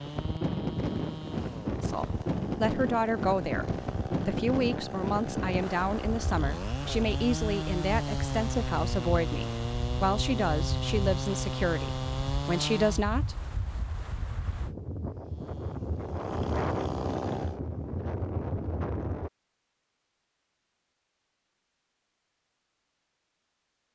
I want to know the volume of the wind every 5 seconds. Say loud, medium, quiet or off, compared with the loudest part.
loud, medium, medium, loud, off.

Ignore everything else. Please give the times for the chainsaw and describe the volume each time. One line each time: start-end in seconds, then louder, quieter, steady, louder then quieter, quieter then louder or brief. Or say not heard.
0.0-13.1 louder
15.2-17.6 brief.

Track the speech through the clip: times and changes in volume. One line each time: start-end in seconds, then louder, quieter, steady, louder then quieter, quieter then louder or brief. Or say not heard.
1.8-13.3 steady.